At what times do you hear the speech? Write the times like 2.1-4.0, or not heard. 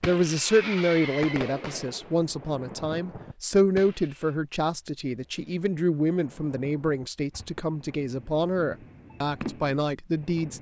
0.0-10.5.